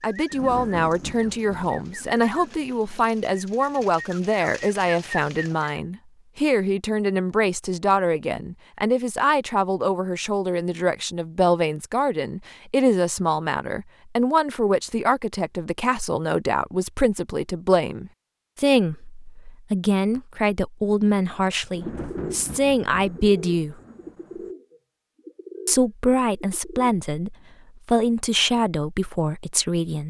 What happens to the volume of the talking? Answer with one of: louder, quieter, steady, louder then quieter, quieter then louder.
steady.